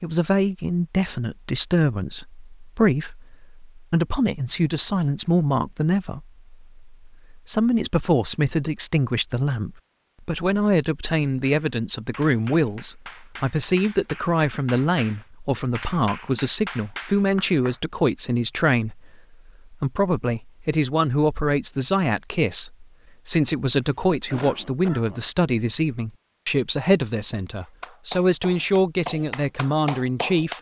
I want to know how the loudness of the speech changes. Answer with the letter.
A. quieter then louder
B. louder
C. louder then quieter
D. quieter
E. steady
E.